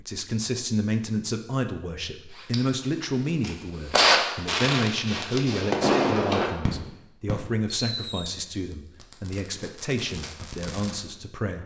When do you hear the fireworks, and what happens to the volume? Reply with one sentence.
You can hear the fireworks from 2.4 to 11.0 s, getting quieter.